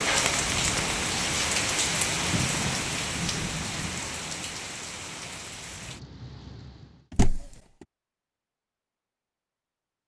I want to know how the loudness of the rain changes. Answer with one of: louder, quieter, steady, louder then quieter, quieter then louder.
quieter.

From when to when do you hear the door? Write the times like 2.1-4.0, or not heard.
2.3-2.9, 7.1-7.5.